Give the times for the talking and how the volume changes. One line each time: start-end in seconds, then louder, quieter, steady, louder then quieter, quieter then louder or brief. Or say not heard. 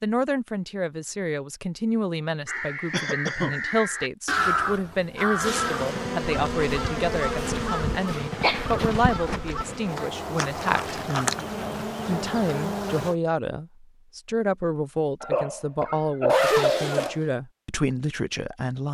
0.0-18.8 steady.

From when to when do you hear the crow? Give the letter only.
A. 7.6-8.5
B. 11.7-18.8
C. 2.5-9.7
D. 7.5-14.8
C.